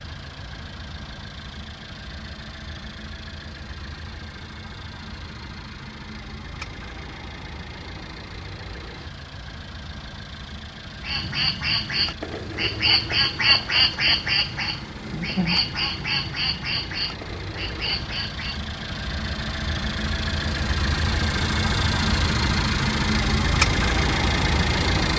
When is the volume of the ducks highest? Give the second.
14 s.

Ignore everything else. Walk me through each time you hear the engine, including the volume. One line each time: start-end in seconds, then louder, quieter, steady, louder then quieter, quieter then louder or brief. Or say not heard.
0.0-25.1 louder.